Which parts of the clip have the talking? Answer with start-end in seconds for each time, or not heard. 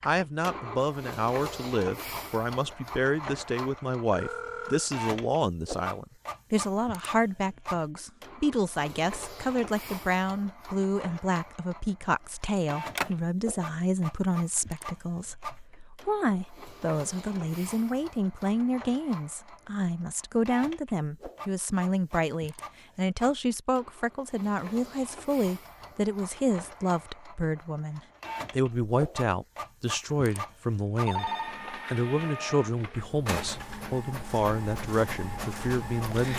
0.0-36.3.